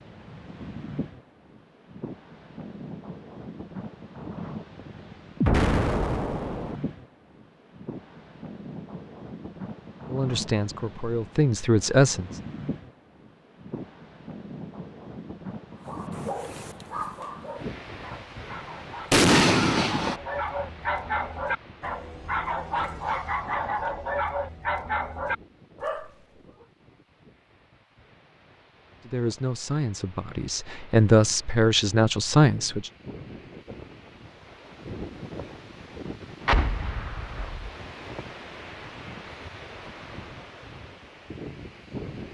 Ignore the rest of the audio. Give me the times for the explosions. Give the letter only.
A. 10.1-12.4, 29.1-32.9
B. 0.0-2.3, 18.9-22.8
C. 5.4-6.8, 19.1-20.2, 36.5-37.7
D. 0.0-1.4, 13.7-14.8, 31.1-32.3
C.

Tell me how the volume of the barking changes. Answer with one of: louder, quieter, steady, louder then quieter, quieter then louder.
louder.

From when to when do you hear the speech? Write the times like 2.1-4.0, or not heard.
10.1-12.4, 29.1-32.9.